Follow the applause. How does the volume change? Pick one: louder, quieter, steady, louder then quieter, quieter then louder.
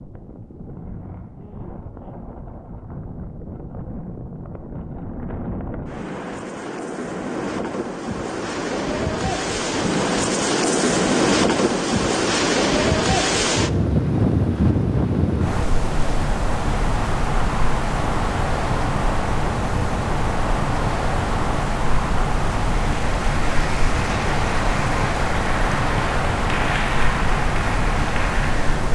steady.